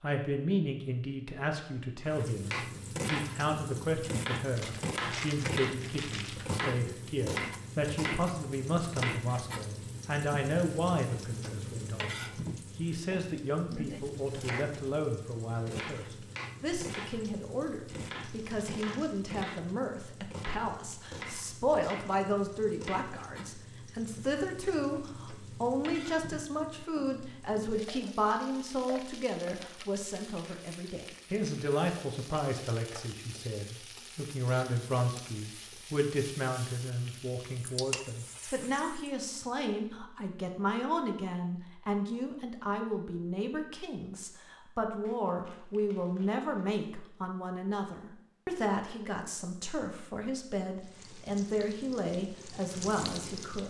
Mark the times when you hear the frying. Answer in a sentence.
The frying can be heard from 2.0 to 39.1 s and from 50.8 to 53.6 s.